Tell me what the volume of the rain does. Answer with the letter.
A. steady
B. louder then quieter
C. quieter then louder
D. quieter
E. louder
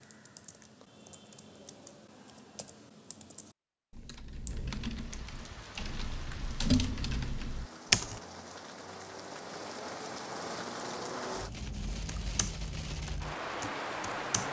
E.